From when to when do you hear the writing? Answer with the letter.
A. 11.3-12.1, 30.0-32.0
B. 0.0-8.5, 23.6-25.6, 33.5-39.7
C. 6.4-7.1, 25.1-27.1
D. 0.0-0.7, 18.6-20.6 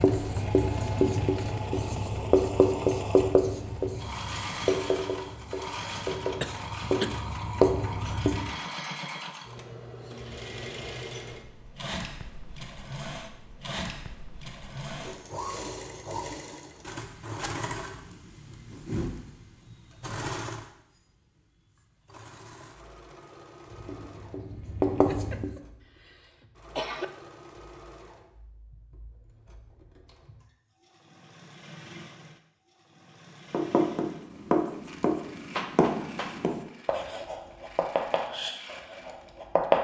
B.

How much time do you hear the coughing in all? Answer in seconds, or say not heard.
3 s.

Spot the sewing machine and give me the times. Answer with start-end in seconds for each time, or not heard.
0.0-39.6.